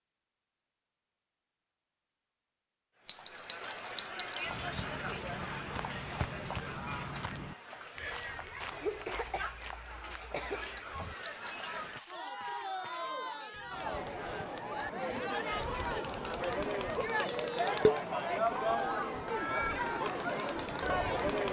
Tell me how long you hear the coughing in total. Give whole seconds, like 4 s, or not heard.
2 s.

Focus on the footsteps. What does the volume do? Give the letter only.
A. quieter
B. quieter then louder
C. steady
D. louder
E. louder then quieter
A.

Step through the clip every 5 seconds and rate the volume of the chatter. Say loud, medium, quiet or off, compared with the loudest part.
medium, medium, medium, loud, loud.